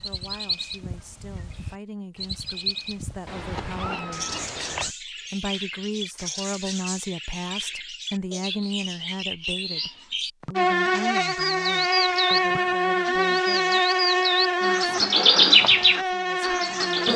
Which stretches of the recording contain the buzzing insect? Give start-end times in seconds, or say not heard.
10.6-17.1.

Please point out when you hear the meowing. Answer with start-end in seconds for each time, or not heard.
3.2-5.0.